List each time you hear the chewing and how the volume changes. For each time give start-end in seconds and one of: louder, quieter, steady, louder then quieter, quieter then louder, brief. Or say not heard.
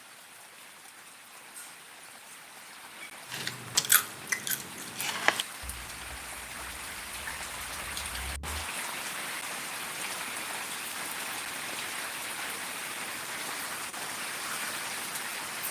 3.3-8.7 quieter.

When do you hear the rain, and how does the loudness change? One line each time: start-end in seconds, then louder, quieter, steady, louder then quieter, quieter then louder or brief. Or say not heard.
0.0-15.6 louder.